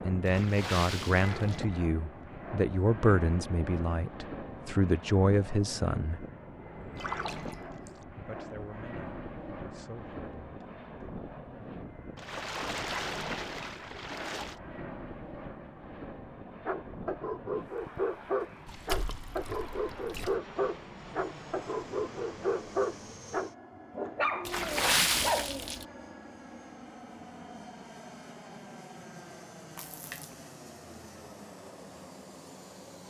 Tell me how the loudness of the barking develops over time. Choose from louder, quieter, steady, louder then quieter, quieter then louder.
steady.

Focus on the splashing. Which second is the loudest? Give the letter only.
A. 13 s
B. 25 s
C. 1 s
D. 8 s
B.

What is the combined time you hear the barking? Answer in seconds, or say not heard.
9 s.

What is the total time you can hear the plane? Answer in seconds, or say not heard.
33 s.